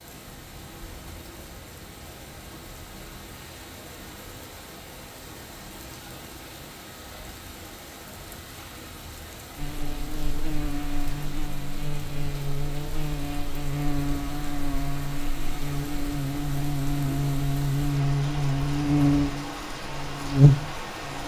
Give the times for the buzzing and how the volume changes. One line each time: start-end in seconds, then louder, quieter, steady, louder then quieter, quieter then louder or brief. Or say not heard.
9.6-21.2 louder.